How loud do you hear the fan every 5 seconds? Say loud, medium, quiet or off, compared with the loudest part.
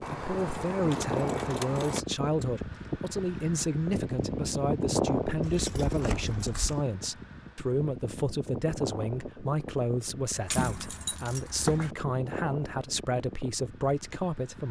loud, loud, medium.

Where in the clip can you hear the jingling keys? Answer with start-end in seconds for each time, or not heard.
0.0-2.0, 5.4-6.8, 10.4-11.9.